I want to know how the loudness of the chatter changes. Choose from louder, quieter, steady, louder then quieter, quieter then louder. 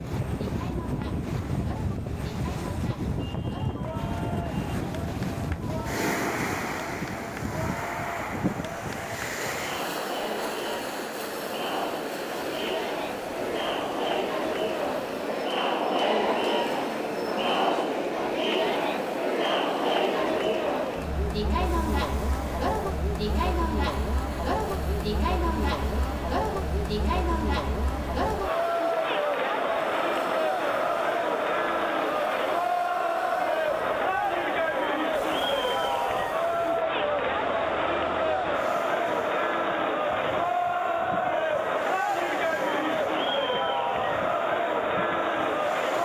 louder.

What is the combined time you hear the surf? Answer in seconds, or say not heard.
46 s.